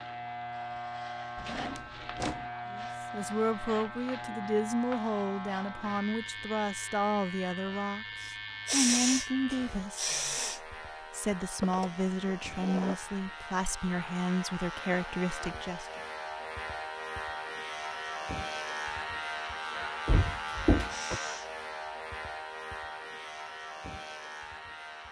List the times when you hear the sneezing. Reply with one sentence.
The sneezing can be heard from 8.7 to 10.6 s and from 20.9 to 21.5 s.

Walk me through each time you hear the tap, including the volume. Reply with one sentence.
The tap can't be heard in this clip.